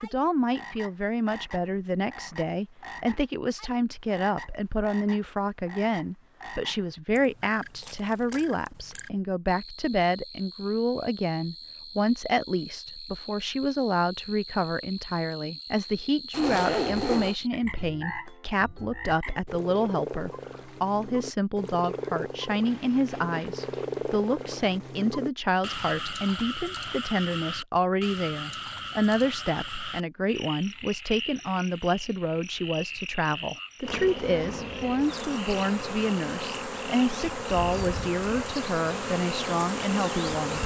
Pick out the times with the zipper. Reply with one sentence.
You can hear the zipper from 16.3 to 17.4 s and from 22.6 to 24.6 s.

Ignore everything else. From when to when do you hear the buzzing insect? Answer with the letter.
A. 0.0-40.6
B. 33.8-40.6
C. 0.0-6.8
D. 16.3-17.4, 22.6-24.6
B.